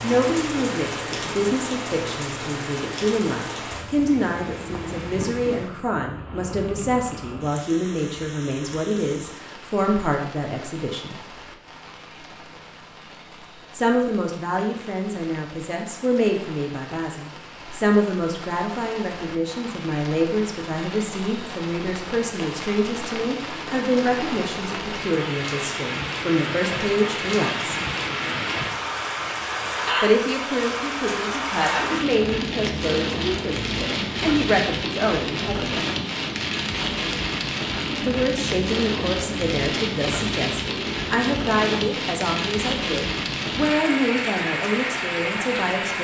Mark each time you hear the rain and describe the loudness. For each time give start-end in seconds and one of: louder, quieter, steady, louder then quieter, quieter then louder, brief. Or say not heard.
0.0-45.9 quieter then louder.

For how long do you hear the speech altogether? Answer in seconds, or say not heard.
39 s.